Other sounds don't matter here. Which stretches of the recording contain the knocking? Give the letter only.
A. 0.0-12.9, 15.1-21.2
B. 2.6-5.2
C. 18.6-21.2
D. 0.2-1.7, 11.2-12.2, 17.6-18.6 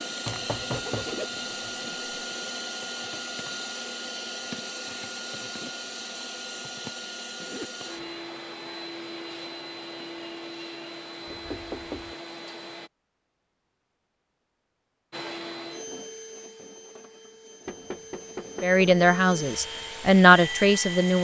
D.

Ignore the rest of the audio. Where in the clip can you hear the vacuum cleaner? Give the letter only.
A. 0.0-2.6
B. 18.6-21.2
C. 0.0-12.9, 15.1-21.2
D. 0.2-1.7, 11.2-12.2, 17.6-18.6
C.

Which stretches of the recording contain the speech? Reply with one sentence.
You can hear the speech from 18.6 to 21.2 s.